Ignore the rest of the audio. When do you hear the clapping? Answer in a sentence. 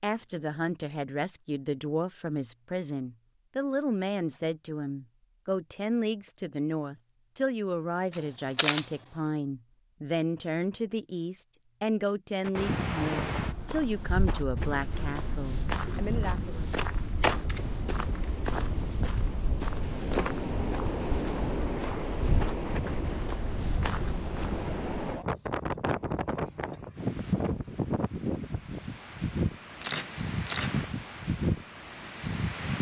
You can't hear the clapping here.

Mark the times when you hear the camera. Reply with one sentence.
You can hear the camera from 8.1 to 8.8 s, from 17.4 to 18.0 s and from 29.8 to 30.8 s.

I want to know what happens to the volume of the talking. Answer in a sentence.
The volume of the talking stays about the same.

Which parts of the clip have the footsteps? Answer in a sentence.
You can hear the footsteps from 13.3 to 24.7 s.